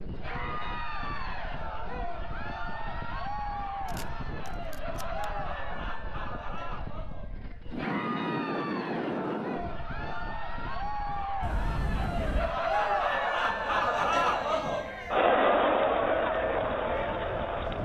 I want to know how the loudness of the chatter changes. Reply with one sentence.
The volume of the chatter goes up.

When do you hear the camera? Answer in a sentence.
The camera can be heard from 3.9 to 5.2 s and from 11.4 to 12.6 s.